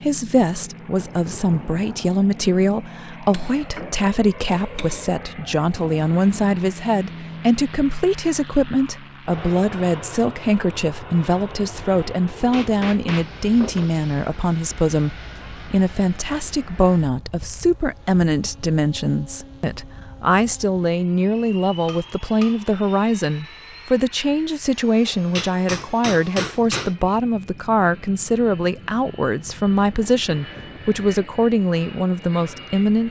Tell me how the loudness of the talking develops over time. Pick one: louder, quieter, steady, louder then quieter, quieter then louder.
steady.